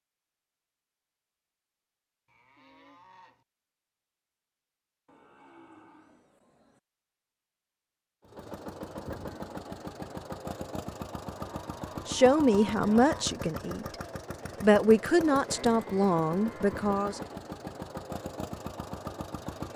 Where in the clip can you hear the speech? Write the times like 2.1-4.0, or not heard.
12.1-13.9, 14.6-17.2.